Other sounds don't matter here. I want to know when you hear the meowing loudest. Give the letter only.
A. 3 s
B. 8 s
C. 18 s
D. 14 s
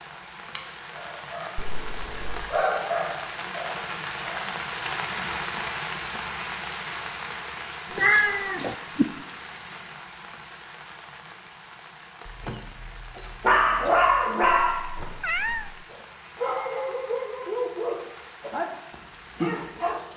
B.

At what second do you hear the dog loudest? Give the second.
14 s.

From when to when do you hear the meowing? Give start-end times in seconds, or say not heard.
1.6-2.5, 7.9-9.2, 14.6-15.8.